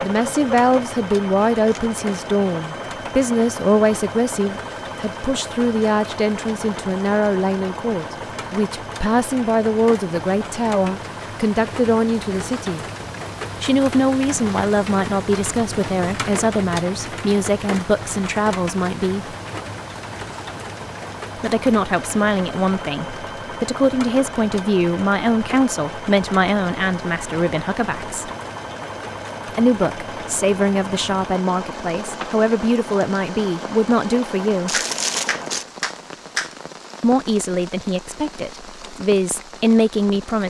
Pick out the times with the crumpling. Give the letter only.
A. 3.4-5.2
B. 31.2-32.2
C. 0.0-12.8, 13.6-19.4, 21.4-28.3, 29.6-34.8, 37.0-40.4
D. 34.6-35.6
D.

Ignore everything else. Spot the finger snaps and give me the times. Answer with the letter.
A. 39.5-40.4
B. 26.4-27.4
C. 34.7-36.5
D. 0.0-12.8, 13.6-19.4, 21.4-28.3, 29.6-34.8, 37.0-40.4
C.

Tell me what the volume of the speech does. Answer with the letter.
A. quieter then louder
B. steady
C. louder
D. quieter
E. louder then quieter
B.